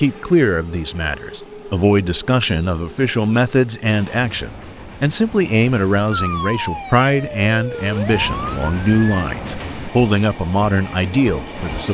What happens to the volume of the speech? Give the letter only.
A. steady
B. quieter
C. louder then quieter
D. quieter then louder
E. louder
A.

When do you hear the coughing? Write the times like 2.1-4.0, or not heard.
not heard.